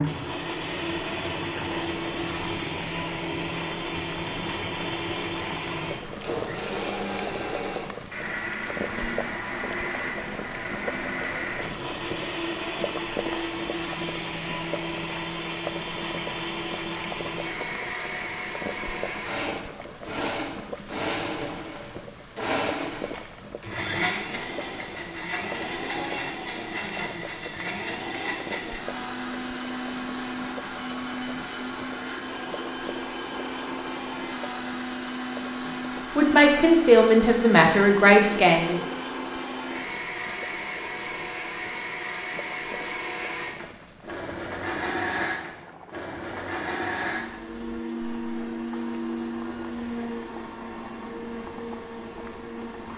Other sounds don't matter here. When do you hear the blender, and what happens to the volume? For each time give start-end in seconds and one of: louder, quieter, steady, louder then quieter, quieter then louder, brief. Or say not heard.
0.0-52.9 steady.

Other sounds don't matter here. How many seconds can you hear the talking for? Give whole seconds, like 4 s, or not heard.
3 s.